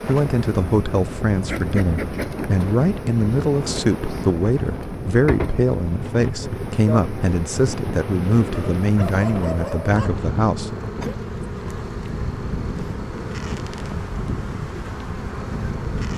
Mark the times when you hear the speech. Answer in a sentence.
The speech can be heard from 0.1 to 10.7 s.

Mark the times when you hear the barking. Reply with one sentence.
You can hear the barking from 8.6 to 10.2 s.